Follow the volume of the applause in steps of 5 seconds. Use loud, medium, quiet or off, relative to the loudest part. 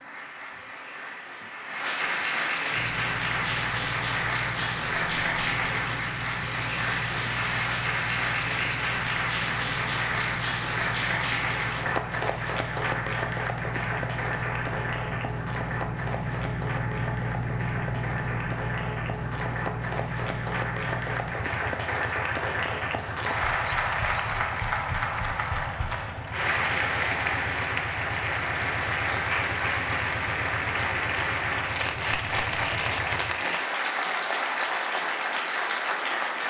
loud, loud, loud, medium, loud, loud, loud, loud.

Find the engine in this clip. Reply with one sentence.
You can hear the engine from 2.7 to 33.3 s.